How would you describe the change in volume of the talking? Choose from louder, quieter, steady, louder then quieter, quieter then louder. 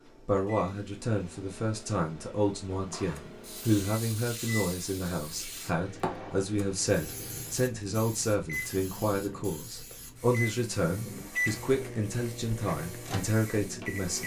steady.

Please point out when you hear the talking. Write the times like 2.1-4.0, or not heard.
0.2-14.2.